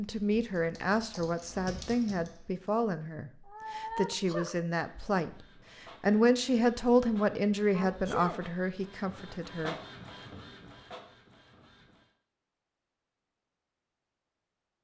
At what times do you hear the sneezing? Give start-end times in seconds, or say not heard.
3.5-4.6, 7.7-8.4.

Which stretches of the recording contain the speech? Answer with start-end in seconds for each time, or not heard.
0.0-5.3, 6.0-9.8.